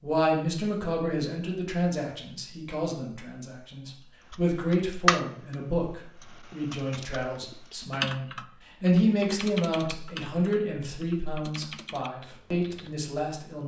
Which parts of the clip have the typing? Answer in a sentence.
The typing can be heard from 4.3 to 13.0 s.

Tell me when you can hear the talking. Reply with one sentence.
You can hear the talking from 0.0 to 13.6 s.